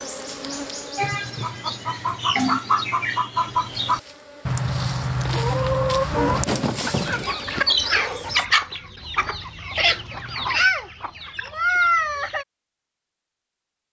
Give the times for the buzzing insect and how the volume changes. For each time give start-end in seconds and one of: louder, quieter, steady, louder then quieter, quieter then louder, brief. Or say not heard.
0.0-1.9 brief
3.7-8.4 louder then quieter.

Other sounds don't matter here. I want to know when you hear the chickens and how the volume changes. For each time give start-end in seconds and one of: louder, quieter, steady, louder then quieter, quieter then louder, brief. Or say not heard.
0.9-12.4 steady.